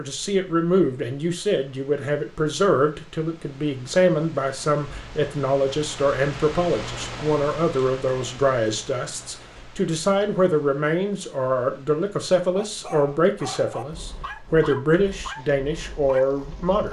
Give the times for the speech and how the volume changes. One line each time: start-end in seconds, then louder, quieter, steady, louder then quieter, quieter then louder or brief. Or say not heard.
0.0-16.8 steady.